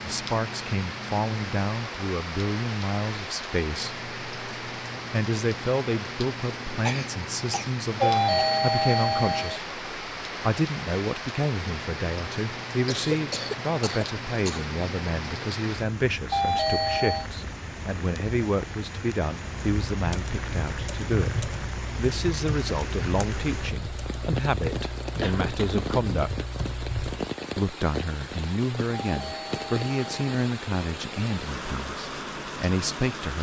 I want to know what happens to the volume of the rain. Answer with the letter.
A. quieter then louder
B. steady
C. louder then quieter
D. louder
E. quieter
B.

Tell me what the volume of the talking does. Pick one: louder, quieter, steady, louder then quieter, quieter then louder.
steady.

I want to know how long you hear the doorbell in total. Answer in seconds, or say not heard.
4 s.